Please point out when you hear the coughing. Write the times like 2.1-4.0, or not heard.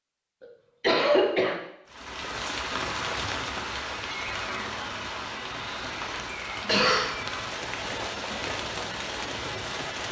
0.8-1.6, 5.5-7.1.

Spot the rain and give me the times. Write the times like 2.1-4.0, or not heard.
1.9-10.0.